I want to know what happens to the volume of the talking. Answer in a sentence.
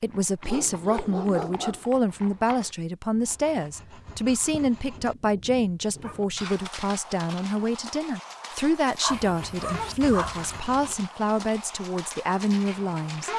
The volume of the talking stays about the same.